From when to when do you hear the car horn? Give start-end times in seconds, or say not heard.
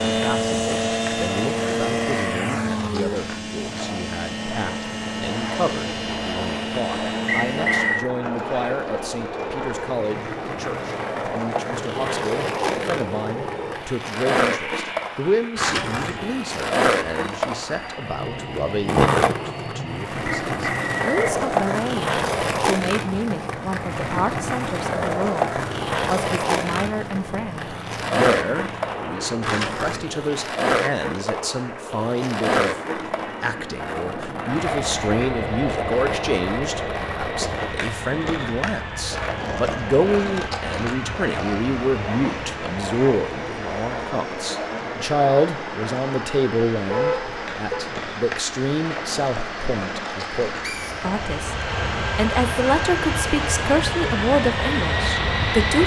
46.9-47.9.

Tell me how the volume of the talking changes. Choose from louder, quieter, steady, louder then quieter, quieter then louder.
louder.